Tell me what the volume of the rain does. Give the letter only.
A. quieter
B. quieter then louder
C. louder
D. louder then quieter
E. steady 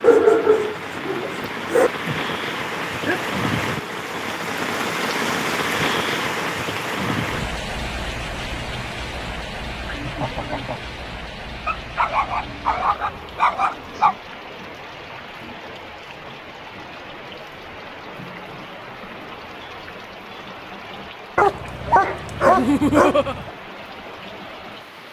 A.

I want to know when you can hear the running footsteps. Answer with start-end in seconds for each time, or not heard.
not heard.